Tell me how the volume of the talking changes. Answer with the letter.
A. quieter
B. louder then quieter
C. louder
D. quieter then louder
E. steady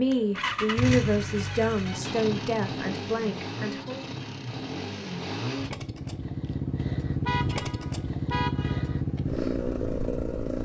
A.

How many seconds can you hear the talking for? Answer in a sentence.
The talking can be heard for 4 seconds in total.